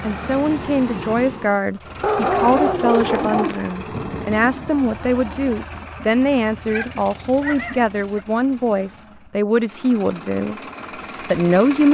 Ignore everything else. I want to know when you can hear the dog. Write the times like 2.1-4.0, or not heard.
2.0-3.6, 6.7-8.2.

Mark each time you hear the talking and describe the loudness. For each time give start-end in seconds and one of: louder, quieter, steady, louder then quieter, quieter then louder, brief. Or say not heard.
0.0-10.6 steady
11.2-11.8 brief.